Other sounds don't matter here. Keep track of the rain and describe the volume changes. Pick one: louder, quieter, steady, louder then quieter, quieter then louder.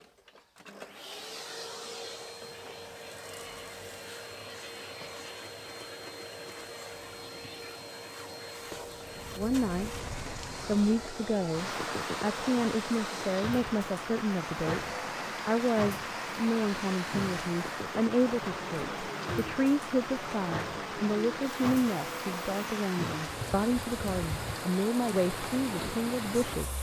steady.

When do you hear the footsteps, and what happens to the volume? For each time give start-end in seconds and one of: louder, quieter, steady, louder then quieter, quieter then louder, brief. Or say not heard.
not heard.